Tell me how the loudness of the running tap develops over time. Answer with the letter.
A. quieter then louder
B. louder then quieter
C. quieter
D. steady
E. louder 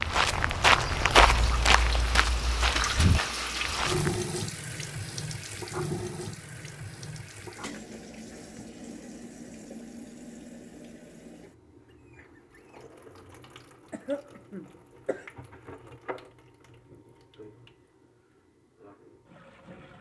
C.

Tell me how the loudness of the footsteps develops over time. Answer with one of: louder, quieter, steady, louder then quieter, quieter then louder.
quieter.